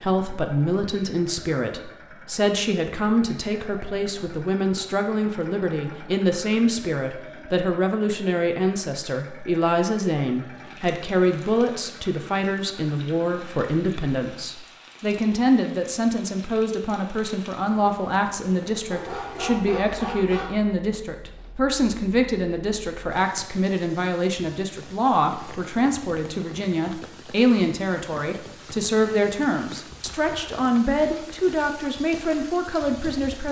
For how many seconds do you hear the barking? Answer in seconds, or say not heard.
2 s.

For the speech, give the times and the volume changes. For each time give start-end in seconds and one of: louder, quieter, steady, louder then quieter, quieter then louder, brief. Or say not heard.
0.0-33.4 steady.